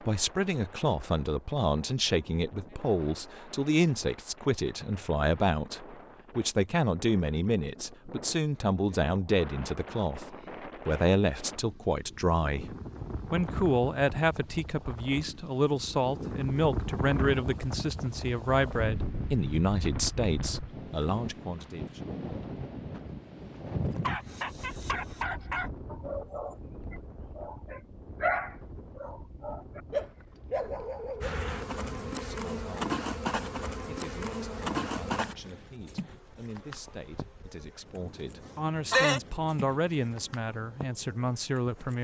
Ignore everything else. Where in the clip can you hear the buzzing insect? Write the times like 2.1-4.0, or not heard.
31.2-42.0.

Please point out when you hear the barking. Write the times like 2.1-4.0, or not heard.
23.9-31.4.